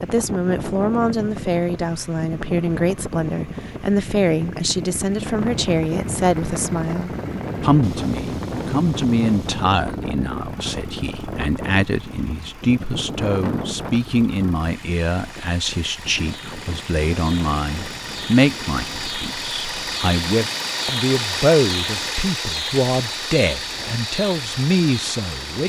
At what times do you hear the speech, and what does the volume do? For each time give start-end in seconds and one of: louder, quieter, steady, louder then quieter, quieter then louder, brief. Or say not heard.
0.0-25.6 steady.